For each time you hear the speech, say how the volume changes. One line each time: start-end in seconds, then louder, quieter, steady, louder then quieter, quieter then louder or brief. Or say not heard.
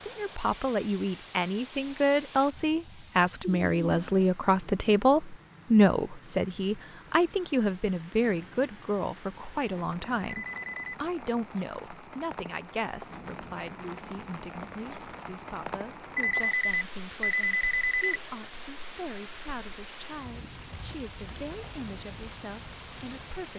0.0-23.5 quieter.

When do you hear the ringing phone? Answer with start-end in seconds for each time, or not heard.
3.4-4.2, 10.2-10.9, 16.1-18.1.